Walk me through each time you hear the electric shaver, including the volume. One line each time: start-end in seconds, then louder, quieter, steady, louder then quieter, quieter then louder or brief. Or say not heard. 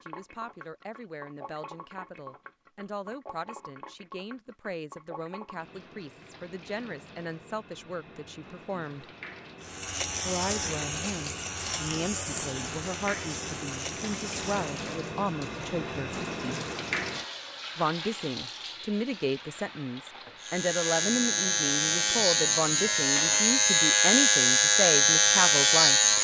9.6-14.8 quieter
20.4-26.2 louder.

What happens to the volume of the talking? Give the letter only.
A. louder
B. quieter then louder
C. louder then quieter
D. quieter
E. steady
A.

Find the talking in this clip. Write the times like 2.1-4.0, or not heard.
0.0-9.1, 10.2-16.1, 17.8-26.0.